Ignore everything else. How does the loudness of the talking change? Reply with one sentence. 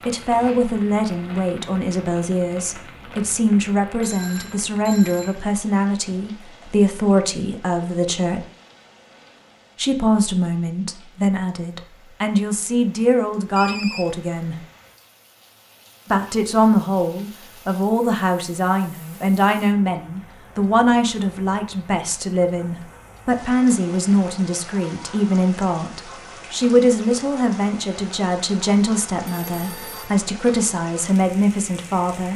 The volume of the talking stays about the same.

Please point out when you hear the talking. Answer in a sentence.
You can hear the talking from 0.1 to 8.4 s, from 9.8 to 14.6 s and from 16.1 to 32.3 s.